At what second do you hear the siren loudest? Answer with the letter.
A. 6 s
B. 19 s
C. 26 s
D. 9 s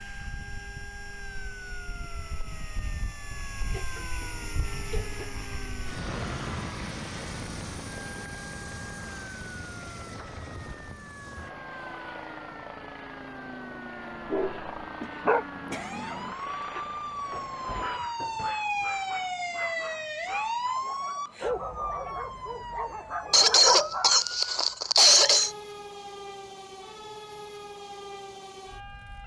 B.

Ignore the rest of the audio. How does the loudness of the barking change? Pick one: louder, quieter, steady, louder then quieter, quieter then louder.
quieter then louder.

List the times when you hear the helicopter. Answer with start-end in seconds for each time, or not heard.
0.0-18.0.